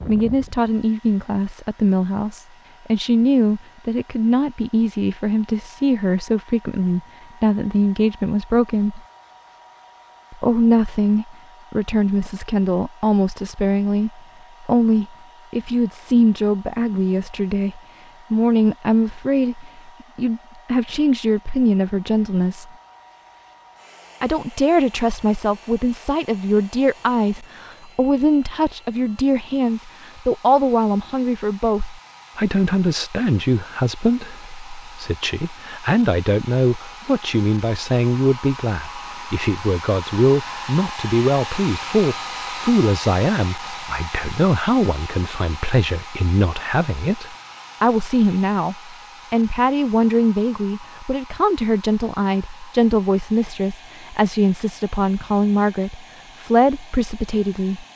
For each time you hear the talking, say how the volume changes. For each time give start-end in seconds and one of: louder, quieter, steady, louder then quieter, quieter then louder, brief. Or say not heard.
0.1-9.0 steady
10.3-22.7 steady
24.2-57.9 steady.